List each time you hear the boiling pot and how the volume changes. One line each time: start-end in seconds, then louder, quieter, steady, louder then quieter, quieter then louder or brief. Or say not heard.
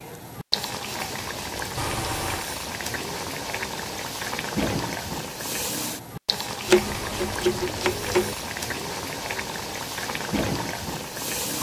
0.0-11.5 steady.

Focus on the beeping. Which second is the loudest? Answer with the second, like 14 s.
2 s.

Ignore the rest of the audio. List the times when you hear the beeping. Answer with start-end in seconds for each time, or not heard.
1.8-2.5, 6.8-7.4.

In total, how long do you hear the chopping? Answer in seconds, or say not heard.
2 s.